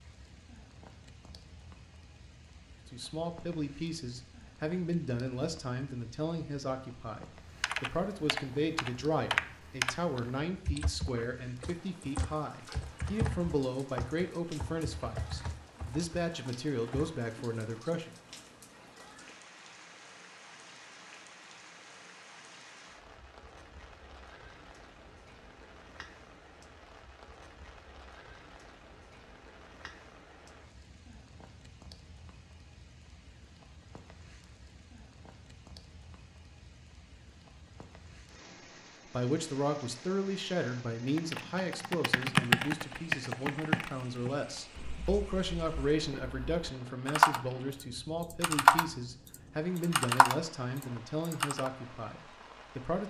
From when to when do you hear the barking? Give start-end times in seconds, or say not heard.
not heard.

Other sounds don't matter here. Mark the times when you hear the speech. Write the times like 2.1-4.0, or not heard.
2.9-18.1, 39.0-53.0.